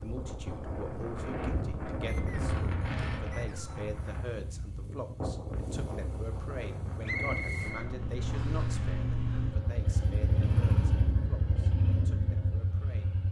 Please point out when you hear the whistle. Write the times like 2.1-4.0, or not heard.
2.0-3.9, 7.0-8.6.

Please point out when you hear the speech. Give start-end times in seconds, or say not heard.
0.0-13.2.